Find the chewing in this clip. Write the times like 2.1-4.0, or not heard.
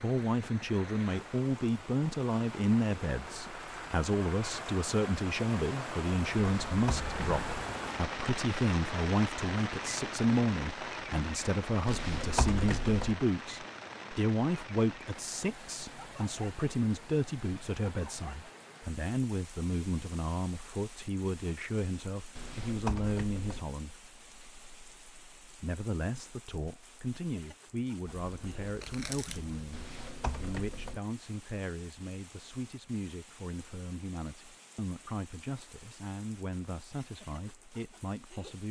28.1-29.8.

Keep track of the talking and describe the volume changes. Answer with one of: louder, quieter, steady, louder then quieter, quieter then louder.
quieter.